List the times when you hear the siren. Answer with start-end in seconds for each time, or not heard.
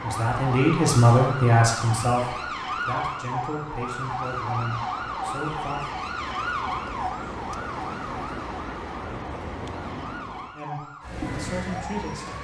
0.0-12.3.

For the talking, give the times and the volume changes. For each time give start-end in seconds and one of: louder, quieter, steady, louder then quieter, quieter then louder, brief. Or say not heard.
0.0-5.8 quieter
10.5-12.3 brief.